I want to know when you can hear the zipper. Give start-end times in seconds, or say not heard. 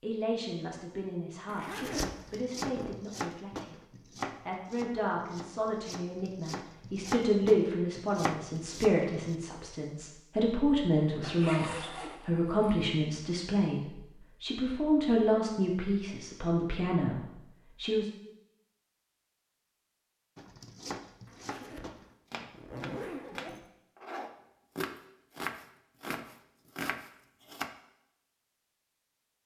1.4-3.0, 11.0-12.9, 21.2-23.6.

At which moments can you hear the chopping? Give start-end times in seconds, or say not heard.
1.9-9.3, 20.4-27.8.